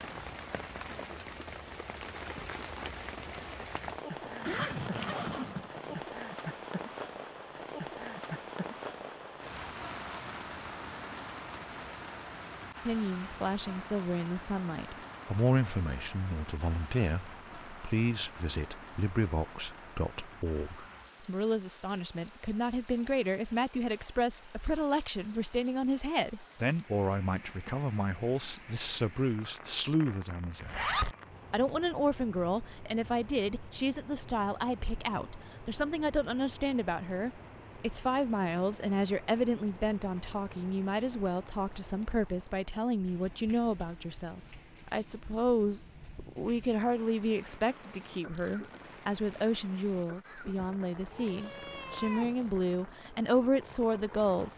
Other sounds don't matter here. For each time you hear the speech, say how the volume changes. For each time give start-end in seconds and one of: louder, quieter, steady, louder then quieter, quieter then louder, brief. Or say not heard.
12.8-30.9 steady
31.5-54.5 steady.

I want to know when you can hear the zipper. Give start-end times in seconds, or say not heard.
4.2-6.1, 30.6-31.1, 48.3-49.4.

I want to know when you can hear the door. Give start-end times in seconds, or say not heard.
not heard.